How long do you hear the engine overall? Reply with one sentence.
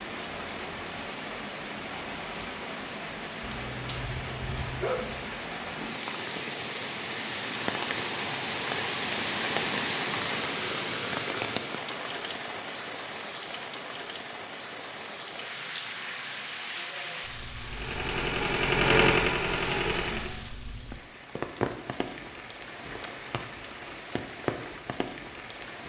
The engine can be heard for 3 seconds in total.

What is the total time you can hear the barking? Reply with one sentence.
You can hear the barking for 2 seconds altogether.